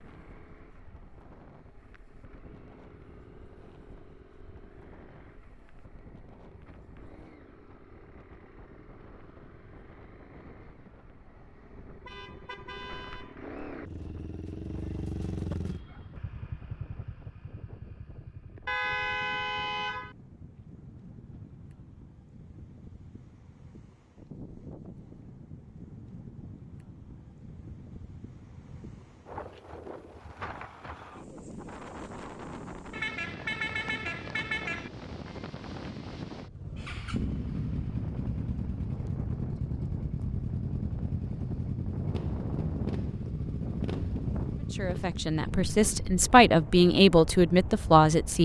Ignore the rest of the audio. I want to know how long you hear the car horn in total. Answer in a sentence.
You can hear the car horn for 5 seconds altogether.